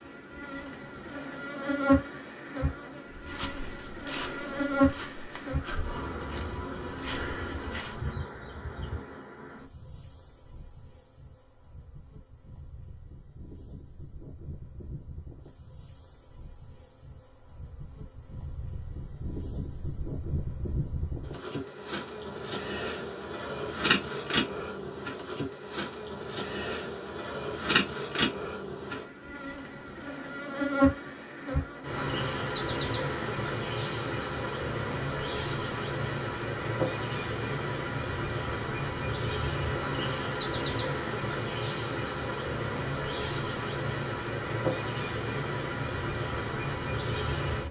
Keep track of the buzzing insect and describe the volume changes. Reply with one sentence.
The volume of the buzzing insect goes down, then up.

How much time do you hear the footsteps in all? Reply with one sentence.
You can hear the footsteps for 5 seconds altogether.